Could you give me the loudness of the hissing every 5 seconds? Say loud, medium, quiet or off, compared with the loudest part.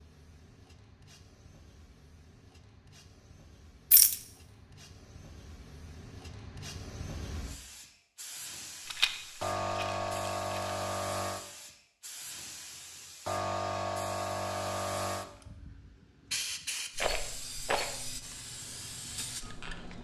quiet, medium, loud, medium.